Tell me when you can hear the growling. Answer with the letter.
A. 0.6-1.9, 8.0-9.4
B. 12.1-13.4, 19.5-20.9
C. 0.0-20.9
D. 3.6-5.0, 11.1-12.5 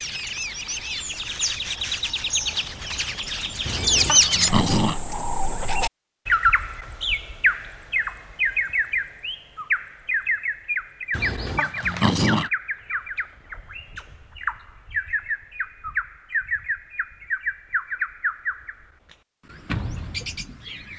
D.